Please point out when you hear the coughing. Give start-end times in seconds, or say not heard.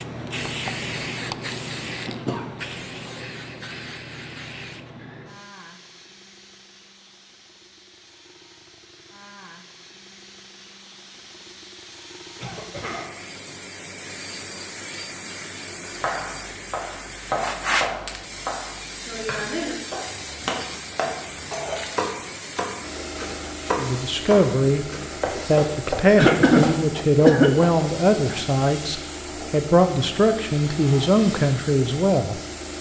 2.0-2.5, 12.3-13.2, 26.1-27.6.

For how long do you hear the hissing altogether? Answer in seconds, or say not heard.
33 s.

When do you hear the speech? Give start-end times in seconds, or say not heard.
23.8-24.9, 25.4-32.4.